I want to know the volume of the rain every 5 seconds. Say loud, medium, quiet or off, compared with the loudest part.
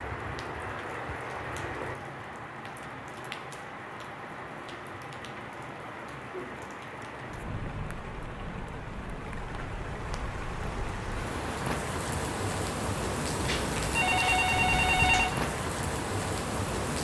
medium, medium, loud, loud.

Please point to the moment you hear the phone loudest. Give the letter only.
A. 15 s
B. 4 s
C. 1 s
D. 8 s
A.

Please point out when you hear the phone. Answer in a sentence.
The phone can be heard from 13.4 to 15.3 s.